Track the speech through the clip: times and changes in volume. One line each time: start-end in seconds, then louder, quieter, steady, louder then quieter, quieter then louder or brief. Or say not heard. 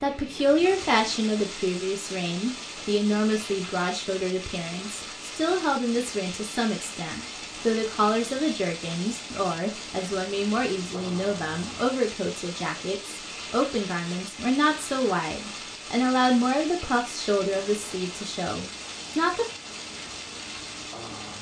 0.0-19.4 steady.